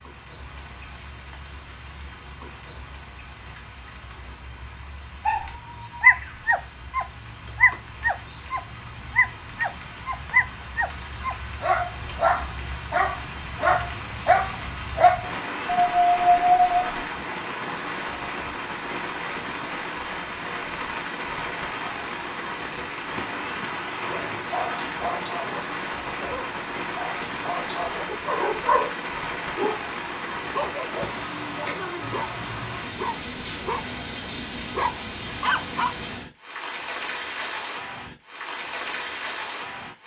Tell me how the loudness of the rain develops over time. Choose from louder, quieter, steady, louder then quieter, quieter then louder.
louder.